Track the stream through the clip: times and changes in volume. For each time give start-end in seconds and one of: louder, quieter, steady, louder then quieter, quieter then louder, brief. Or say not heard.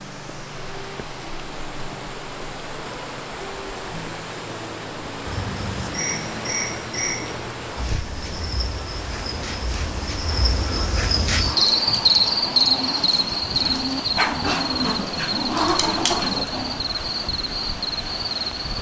0.0-18.7 steady.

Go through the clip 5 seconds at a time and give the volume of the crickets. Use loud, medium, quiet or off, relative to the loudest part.
off, medium, loud, medium.